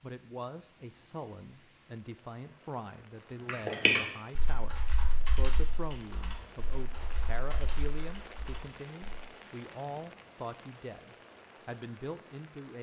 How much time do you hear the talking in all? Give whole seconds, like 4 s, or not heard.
13 s.